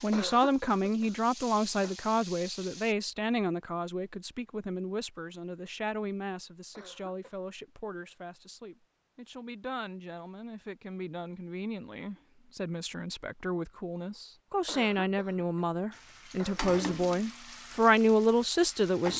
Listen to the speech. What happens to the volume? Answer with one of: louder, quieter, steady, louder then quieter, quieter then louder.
quieter then louder.